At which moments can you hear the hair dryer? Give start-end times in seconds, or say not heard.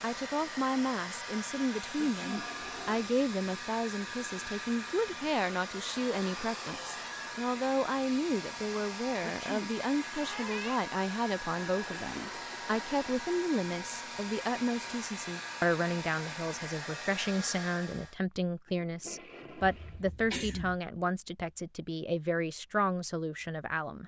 0.0-18.2.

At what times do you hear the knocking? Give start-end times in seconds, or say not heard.
not heard.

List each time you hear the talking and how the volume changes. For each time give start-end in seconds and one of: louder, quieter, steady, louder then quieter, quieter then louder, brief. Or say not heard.
0.0-24.0 steady.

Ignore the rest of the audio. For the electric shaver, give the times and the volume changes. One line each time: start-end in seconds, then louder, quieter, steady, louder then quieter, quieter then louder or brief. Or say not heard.
not heard.